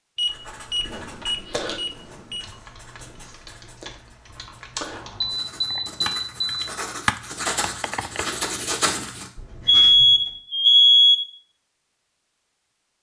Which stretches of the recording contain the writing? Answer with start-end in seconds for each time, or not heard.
0.2-10.2.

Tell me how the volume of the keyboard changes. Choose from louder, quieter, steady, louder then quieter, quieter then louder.
louder.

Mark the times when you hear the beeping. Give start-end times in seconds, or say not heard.
0.1-2.5, 5.0-6.7, 9.7-11.2.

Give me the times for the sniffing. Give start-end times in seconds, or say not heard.
not heard.